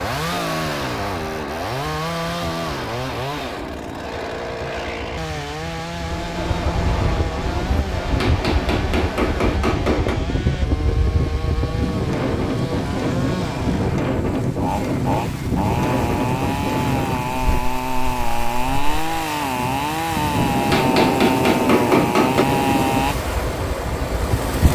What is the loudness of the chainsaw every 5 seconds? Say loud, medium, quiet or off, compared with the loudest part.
loud, medium, medium, loud, loud.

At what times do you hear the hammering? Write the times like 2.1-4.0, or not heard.
8.2-10.2, 20.7-22.4.